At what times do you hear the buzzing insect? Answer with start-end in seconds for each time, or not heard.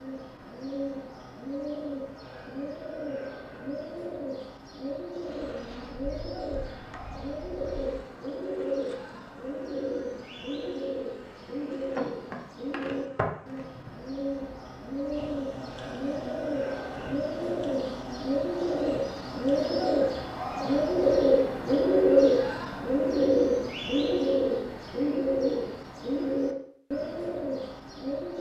5.2-19.9.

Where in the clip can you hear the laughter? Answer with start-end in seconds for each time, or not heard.
not heard.